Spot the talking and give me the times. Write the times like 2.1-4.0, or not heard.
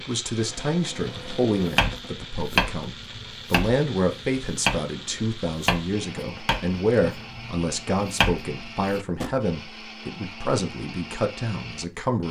0.0-12.2.